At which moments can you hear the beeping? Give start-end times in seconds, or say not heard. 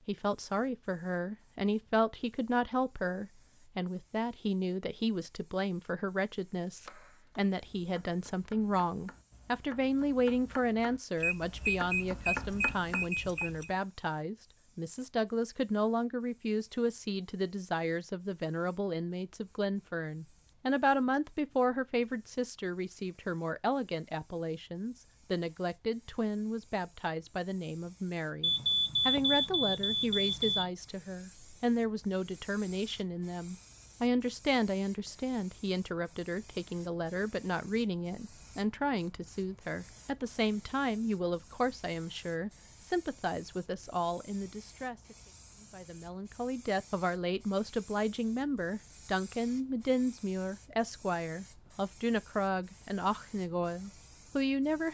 11.2-13.7, 28.4-30.6.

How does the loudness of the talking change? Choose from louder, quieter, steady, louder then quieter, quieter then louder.
steady.